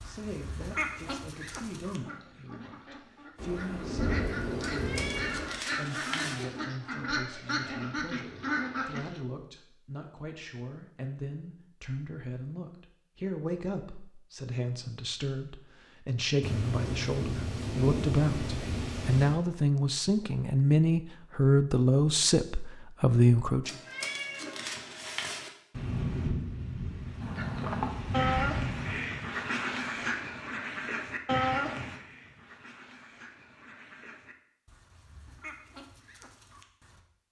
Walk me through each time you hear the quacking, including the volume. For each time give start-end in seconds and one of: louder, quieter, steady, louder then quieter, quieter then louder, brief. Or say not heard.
0.0-9.2 quieter then louder
27.2-37.0 quieter.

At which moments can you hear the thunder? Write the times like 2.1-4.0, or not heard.
3.4-5.5, 16.4-19.4, 25.7-28.9.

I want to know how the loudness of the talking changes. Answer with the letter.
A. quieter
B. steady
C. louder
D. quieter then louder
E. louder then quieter
C.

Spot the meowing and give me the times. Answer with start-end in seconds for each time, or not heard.
4.6-6.5, 23.6-25.5.